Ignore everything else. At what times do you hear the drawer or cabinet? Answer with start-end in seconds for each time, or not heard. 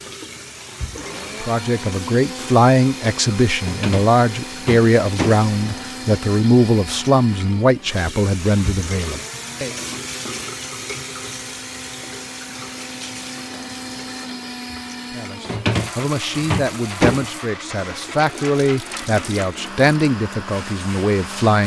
3.6-5.8, 15.4-17.4.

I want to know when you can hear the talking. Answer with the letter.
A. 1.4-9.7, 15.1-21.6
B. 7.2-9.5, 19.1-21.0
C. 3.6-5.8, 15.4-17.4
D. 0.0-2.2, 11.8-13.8
A.